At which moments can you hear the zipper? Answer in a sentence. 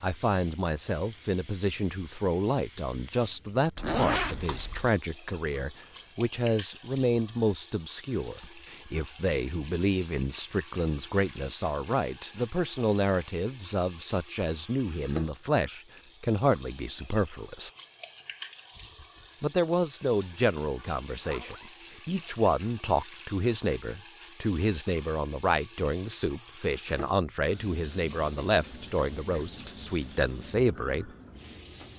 You can hear the zipper from 3.8 to 4.9 s and from 21.1 to 22.5 s.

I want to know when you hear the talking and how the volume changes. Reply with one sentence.
The talking can be heard from 0.0 to 17.7 s, at a steady volume; and from 19.4 to 31.1 s, at a steady volume.